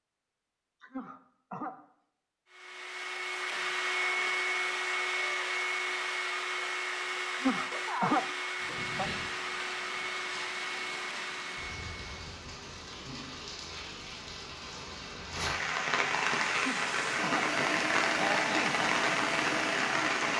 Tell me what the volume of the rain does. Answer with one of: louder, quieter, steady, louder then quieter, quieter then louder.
louder.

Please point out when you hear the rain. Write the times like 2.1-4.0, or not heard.
8.6-20.3.